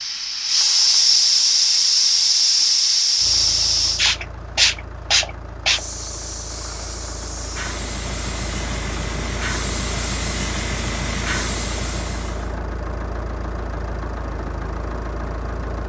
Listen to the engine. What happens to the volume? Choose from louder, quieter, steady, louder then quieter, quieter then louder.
louder.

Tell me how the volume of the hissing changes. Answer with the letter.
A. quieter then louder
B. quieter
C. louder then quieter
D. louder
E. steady
B.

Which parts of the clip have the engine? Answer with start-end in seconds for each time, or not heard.
3.1-15.8.